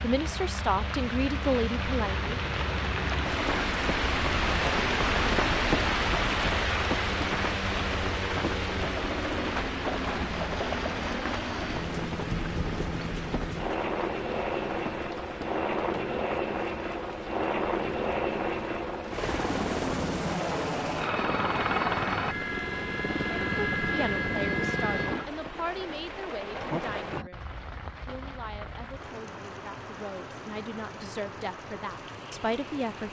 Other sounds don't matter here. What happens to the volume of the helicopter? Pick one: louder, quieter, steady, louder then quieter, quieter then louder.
louder.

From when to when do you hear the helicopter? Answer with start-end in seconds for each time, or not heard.
0.1-25.3.